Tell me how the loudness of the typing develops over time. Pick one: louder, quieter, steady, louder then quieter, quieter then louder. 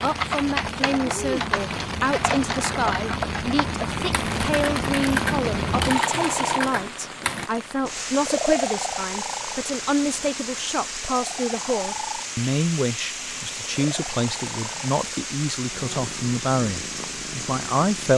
steady.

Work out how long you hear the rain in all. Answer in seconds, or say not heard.
18 s.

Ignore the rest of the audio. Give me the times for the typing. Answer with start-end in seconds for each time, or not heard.
0.1-7.5.